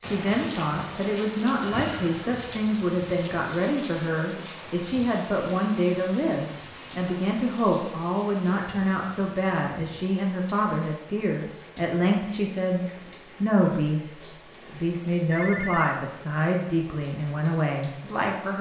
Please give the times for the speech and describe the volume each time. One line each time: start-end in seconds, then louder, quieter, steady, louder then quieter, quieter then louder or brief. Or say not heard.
0.0-18.5 steady.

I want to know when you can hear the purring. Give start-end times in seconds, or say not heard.
not heard.